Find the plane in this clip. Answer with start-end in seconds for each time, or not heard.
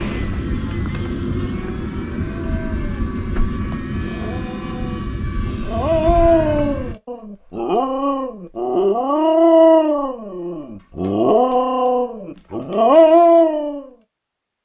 0.0-7.0.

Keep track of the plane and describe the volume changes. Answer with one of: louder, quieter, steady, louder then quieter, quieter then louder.
steady.